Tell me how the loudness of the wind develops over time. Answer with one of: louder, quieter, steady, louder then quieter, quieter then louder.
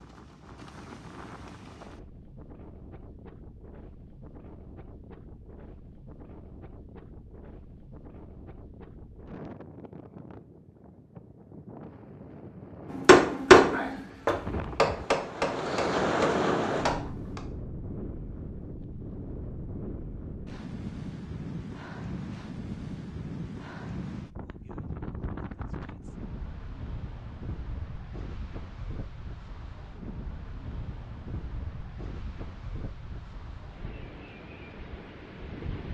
louder then quieter.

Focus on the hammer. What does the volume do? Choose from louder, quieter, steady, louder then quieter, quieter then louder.
quieter then louder.